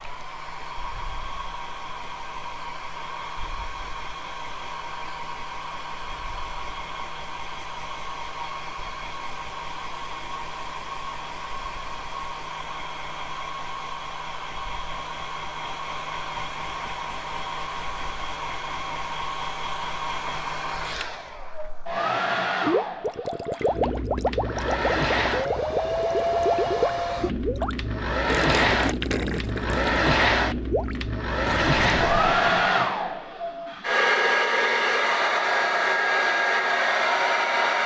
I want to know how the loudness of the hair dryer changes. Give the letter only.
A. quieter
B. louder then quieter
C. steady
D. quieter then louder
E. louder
E.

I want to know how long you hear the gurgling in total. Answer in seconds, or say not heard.
10 s.